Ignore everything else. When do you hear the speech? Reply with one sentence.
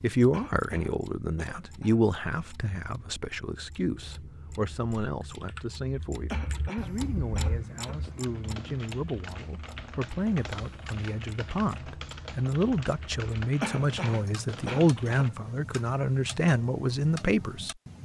You can hear the speech from 0.0 to 17.8 s.